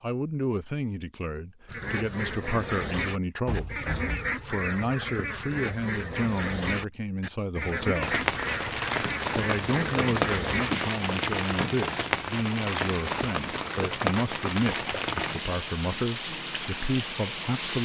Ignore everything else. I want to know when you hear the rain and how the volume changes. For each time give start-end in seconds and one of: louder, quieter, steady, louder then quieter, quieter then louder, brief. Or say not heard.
8.0-17.8 steady.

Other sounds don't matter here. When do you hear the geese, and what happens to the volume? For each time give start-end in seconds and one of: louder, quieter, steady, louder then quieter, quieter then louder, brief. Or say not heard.
1.6-10.8 steady.